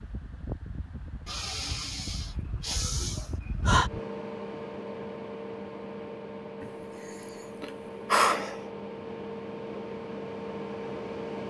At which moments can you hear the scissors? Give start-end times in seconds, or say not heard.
not heard.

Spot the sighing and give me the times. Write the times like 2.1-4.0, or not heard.
1.2-3.9, 6.6-8.6.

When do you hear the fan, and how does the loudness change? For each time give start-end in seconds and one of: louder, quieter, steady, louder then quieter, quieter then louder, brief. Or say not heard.
0.0-11.4 louder.